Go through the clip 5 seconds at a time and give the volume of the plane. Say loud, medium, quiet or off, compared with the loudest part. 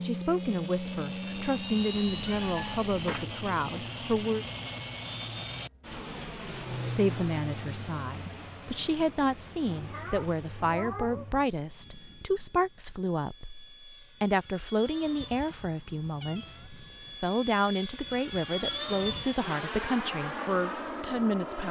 loud, loud, quiet, loud, loud.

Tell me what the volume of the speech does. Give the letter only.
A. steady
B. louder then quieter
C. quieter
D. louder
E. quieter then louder
A.